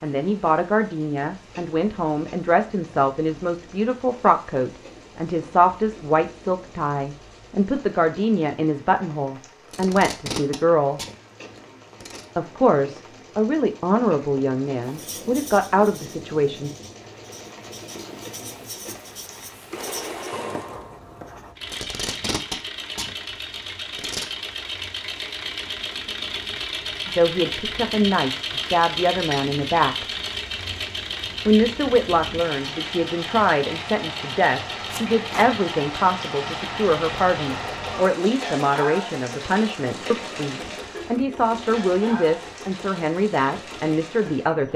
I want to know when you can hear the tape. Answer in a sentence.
The tape can be heard from 9.7 to 12.2 s, from 21.6 to 24.2 s and from 34.9 to 35.5 s.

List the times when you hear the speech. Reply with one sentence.
The speech can be heard from 0.0 to 11.0 s, from 12.3 to 16.7 s, from 27.1 to 30.1 s and from 31.4 to 44.7 s.